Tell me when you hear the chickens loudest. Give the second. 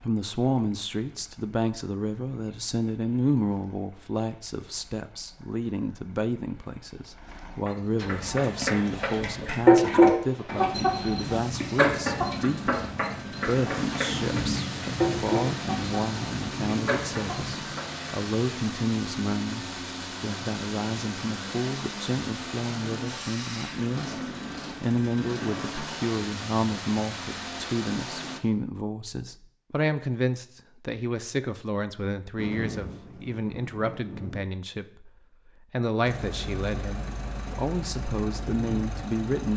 10 s.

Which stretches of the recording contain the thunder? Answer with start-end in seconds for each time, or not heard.
14.0-17.6, 32.4-34.4.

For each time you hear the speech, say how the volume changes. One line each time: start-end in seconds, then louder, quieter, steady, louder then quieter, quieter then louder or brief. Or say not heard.
0.0-39.5 steady.